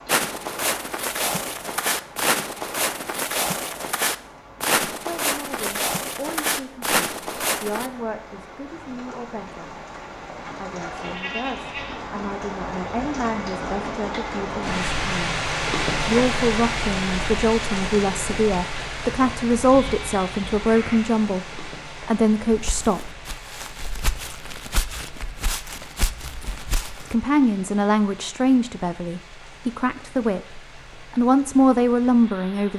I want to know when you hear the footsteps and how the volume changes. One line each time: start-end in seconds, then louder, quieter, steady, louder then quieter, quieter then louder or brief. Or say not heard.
0.1-7.9 steady
22.5-27.1 louder.